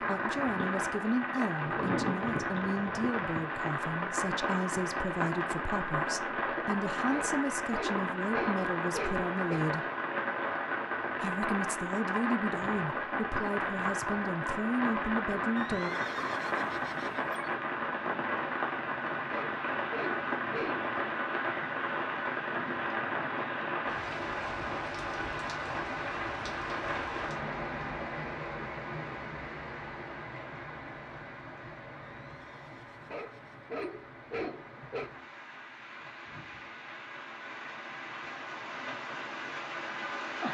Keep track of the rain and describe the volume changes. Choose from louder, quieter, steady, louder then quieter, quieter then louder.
quieter.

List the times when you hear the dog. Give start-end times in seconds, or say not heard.
7.1-9.7, 19.3-20.9, 33.1-35.1.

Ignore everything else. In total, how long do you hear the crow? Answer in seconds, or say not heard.
not heard.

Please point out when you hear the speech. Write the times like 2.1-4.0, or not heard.
0.0-9.8, 11.2-15.9.